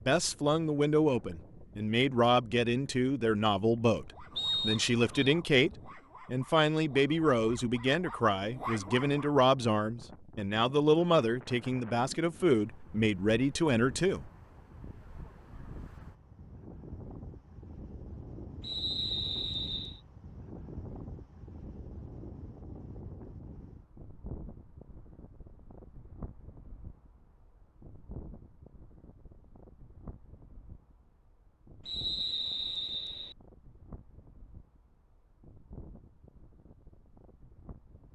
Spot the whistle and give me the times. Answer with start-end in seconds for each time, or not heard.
4.3-5.3, 18.6-20.0, 31.9-33.4.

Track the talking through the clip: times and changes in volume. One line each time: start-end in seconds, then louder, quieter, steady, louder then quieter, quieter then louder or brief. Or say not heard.
0.1-14.3 steady.